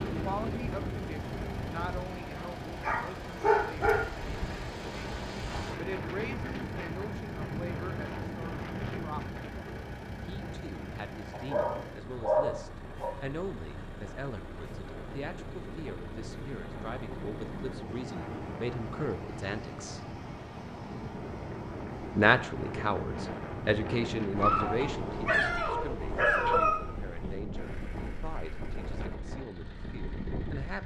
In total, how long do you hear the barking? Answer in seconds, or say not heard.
6 s.